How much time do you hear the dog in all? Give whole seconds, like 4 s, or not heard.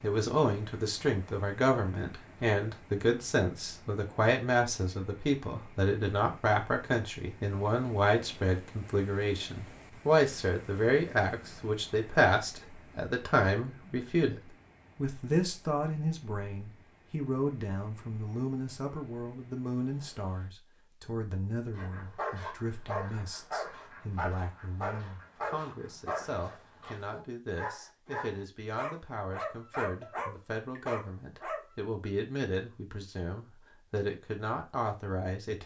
10 s.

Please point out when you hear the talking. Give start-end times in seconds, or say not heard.
0.0-35.6.